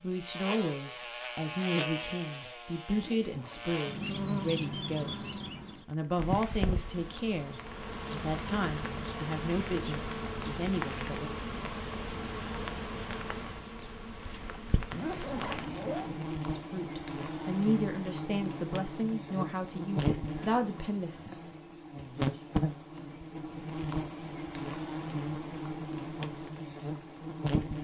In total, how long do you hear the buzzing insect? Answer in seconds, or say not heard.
28 s.